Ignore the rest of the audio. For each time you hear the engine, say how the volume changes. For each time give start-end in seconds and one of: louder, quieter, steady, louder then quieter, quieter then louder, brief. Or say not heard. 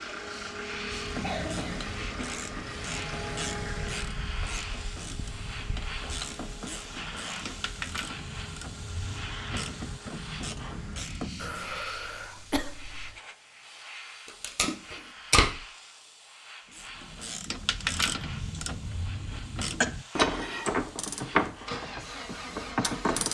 0.0-11.0 quieter
21.4-23.2 brief.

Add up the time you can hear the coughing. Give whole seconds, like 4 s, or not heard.
4 s.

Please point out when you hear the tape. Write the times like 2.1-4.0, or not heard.
14.2-15.6.